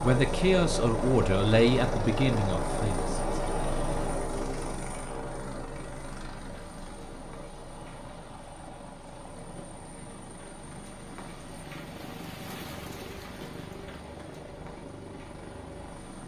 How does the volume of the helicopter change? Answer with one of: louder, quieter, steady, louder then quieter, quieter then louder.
quieter.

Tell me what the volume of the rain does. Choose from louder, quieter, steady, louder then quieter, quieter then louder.
louder then quieter.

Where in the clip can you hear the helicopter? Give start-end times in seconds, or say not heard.
0.0-16.2.